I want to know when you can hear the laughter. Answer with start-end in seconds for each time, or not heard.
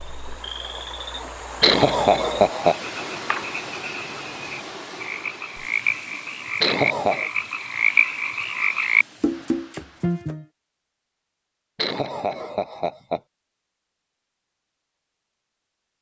1.6-2.8, 6.6-7.3, 11.8-13.2.